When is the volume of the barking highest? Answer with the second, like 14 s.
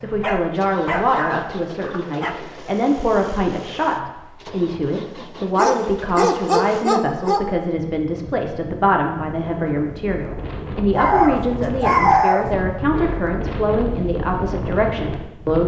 12 s.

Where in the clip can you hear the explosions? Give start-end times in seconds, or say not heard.
not heard.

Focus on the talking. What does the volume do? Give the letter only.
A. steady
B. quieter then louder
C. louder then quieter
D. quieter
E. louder
A.